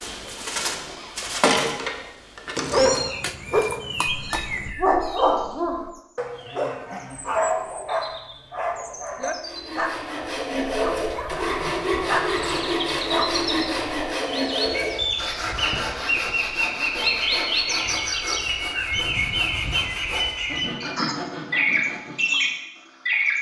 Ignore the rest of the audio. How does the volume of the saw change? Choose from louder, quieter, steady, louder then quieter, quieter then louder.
quieter.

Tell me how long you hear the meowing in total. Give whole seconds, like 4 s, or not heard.
2 s.